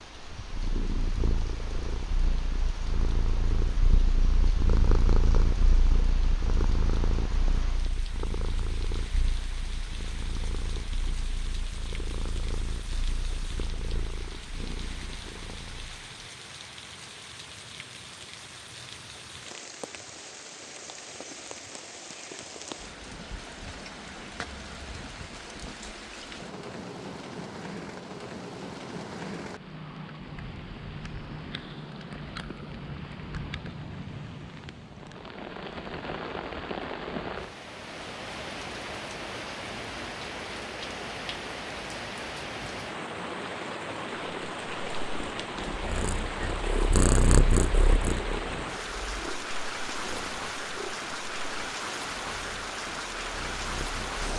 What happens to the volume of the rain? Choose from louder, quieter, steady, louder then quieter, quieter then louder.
louder.